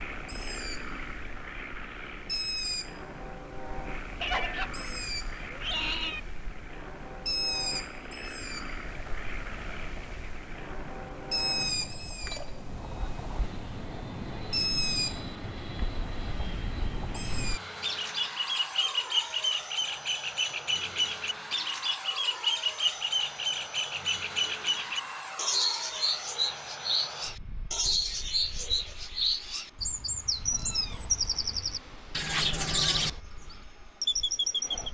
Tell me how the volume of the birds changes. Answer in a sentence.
The volume of the birds goes up.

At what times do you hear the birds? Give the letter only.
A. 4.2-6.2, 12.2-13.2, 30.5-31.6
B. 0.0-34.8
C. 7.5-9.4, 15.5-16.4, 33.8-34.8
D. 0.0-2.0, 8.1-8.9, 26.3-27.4
B.